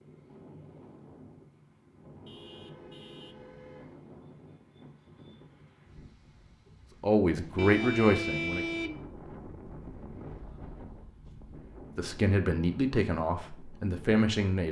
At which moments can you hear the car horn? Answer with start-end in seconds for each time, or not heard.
2.2-4.0, 7.5-9.1.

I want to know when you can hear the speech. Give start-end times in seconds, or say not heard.
7.0-8.7, 11.9-14.6.